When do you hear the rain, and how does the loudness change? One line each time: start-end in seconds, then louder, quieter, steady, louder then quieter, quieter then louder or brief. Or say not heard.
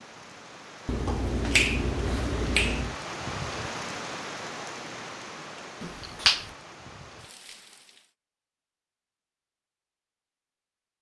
0.0-8.1 louder then quieter.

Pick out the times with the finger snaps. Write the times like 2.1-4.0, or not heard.
0.8-3.0, 5.8-6.5.